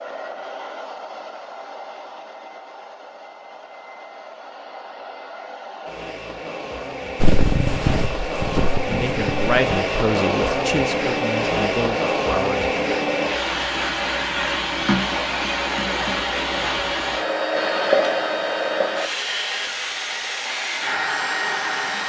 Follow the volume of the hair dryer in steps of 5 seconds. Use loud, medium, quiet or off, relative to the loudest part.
quiet, medium, loud, loud, loud.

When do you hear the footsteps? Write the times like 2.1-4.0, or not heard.
7.2-9.6.